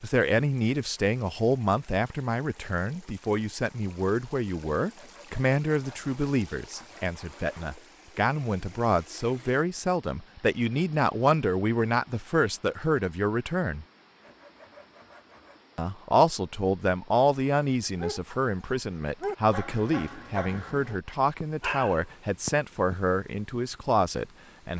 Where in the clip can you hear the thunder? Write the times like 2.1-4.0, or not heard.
not heard.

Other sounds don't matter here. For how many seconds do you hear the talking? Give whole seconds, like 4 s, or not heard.
23 s.